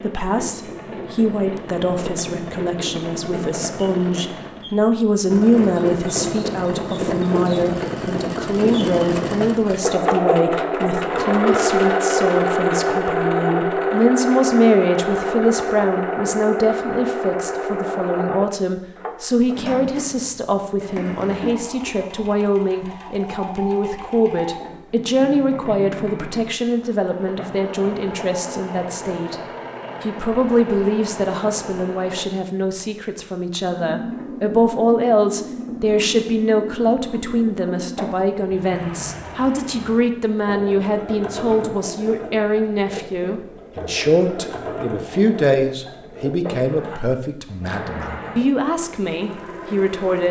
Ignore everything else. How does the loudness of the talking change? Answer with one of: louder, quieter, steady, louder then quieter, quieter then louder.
steady.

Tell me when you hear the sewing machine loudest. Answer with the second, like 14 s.
12 s.